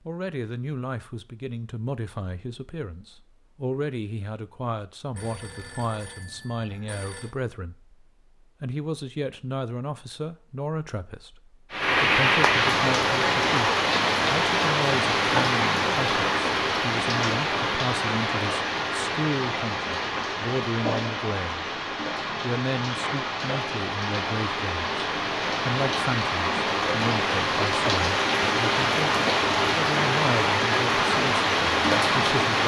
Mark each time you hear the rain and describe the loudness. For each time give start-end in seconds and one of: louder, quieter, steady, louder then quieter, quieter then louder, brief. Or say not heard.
11.7-32.6 quieter then louder.